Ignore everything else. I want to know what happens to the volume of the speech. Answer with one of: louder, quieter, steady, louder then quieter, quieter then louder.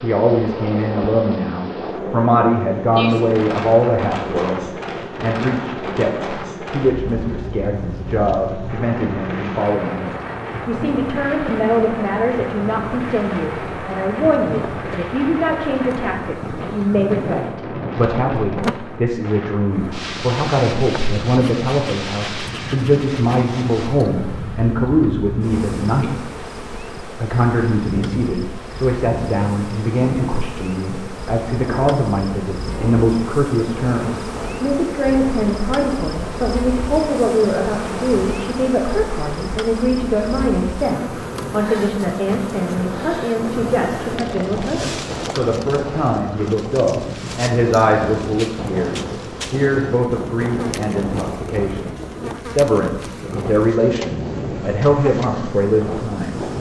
steady.